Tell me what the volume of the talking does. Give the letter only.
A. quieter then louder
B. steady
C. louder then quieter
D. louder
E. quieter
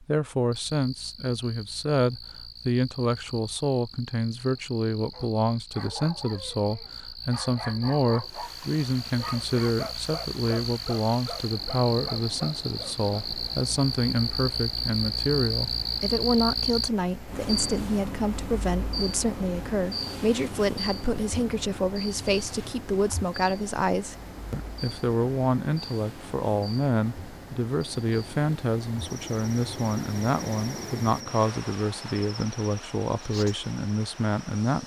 B.